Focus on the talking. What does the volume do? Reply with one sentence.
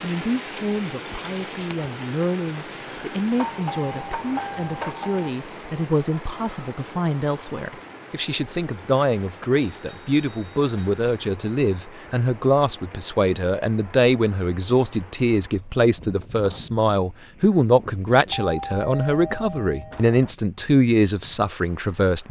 The loudness of the talking goes up.